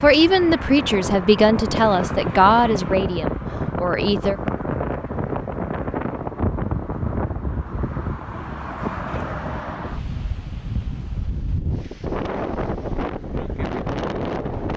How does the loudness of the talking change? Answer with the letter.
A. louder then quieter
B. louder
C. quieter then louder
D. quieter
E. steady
D.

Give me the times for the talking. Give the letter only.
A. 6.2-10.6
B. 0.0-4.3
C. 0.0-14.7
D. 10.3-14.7
B.